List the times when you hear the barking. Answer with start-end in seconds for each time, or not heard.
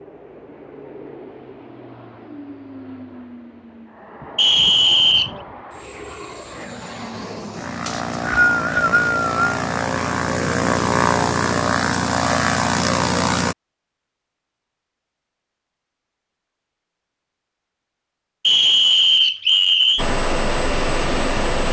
not heard.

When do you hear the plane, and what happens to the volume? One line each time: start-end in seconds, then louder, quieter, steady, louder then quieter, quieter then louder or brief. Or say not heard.
0.0-13.6 louder
19.9-21.6 brief.